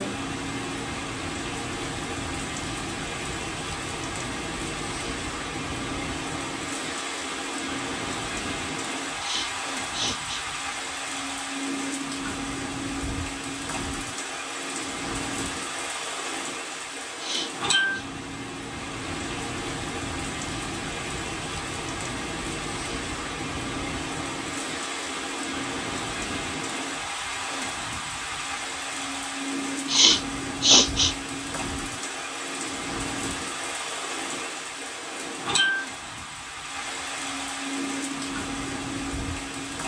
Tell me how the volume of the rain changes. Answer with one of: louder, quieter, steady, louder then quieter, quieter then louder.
steady.